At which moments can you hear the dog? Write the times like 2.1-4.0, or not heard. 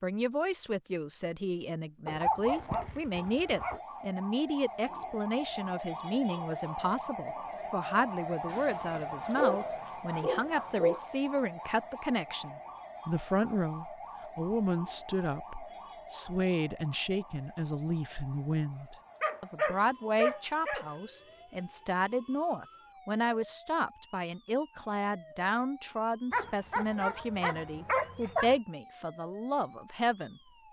2.0-3.8, 8.5-11.0, 19.2-20.9, 26.3-28.6.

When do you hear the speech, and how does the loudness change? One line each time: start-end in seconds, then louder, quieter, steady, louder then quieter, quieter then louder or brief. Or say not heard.
0.0-30.6 steady.